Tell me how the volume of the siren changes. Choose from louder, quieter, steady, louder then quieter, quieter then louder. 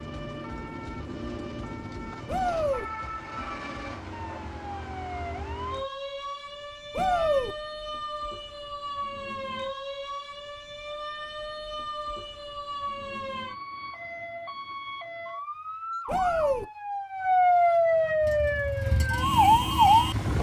louder.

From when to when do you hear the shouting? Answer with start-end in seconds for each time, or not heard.
2.2-2.9, 7.0-7.5, 16.1-16.6.